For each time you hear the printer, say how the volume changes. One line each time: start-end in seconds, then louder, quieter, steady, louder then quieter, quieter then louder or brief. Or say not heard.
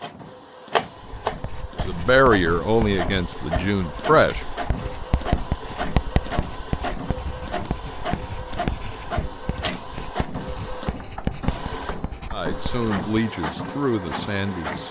0.0-14.8 steady.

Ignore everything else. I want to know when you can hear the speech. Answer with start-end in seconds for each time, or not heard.
1.8-4.5, 12.3-14.8.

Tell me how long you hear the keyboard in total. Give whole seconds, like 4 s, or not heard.
not heard.